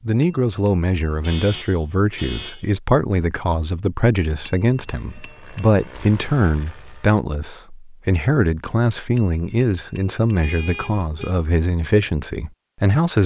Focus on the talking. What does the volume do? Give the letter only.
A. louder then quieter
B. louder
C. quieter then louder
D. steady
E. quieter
D.